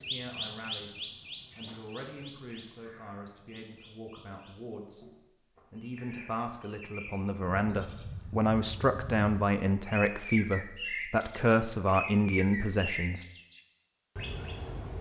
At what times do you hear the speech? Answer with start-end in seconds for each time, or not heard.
0.1-0.9, 1.6-5.0, 5.7-13.2.